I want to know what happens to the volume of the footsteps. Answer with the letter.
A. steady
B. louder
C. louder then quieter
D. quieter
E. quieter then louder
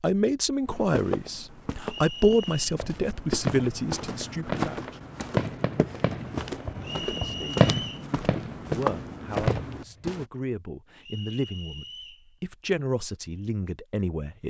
B.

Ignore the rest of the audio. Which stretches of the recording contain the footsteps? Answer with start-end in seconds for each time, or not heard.
0.7-10.2.